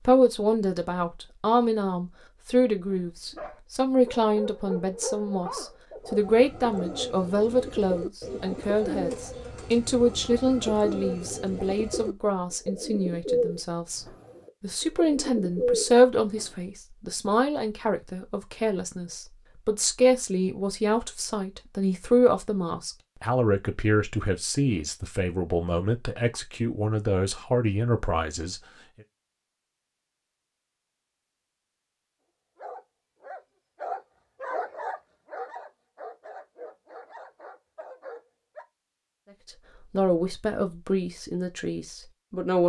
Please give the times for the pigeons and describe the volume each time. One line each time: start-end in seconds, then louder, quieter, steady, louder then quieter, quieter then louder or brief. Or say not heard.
6.0-16.6 louder.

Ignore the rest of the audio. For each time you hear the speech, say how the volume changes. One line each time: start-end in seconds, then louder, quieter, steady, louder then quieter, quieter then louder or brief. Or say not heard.
0.1-28.6 steady
39.9-42.6 brief.